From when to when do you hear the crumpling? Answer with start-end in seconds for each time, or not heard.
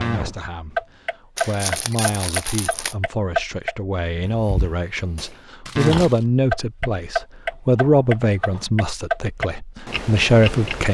1.4-3.0, 5.7-6.2.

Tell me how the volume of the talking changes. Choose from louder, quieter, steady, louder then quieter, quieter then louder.
louder.